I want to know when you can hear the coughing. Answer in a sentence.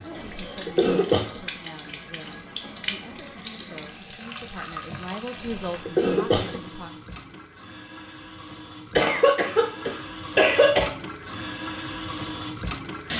You can hear the coughing from 0.1 to 1.4 s, from 5.3 to 6.6 s and from 8.9 to 10.9 s.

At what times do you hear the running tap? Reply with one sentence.
The running tap can be heard from 0.0 to 13.1 s.